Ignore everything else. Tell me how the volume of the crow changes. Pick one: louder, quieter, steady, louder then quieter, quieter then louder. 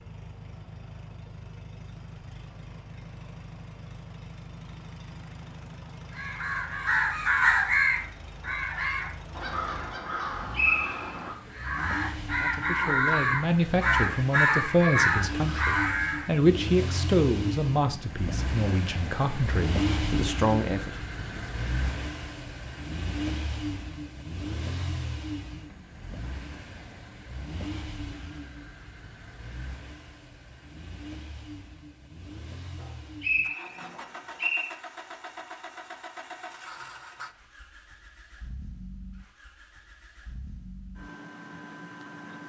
quieter then louder.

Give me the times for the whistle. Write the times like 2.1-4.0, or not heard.
10.5-11.3, 32.8-34.7.